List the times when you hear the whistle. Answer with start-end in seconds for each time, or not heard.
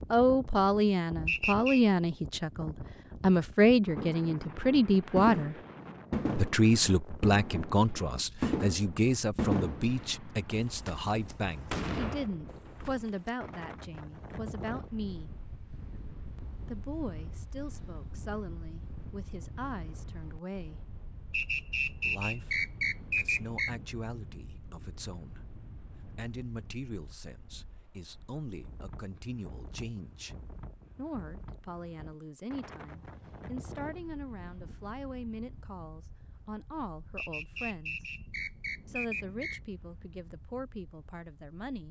1.2-1.9, 21.3-23.7, 37.1-39.6.